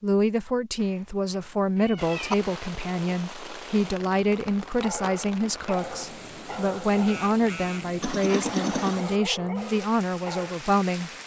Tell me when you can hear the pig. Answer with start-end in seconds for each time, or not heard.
not heard.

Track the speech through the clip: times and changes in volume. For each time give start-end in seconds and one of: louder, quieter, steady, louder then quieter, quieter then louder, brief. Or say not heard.
0.0-11.1 steady.